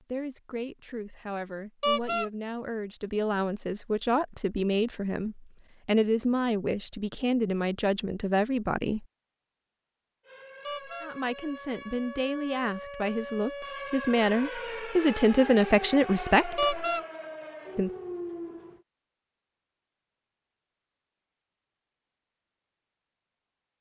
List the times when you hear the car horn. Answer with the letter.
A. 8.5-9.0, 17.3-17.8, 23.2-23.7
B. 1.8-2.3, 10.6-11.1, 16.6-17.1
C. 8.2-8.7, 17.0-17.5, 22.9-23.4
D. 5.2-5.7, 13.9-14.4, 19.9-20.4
B.